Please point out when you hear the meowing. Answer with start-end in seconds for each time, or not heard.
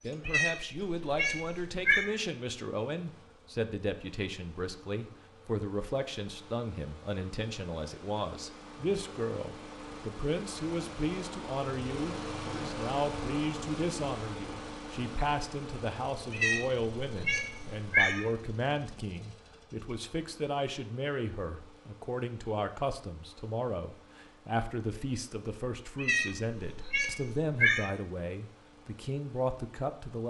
0.2-2.0, 16.3-18.2, 25.9-27.9.